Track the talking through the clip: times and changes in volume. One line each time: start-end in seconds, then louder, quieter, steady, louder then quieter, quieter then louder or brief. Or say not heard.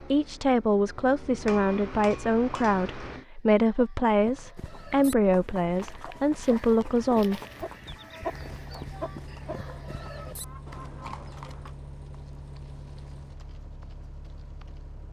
0.0-7.4 steady.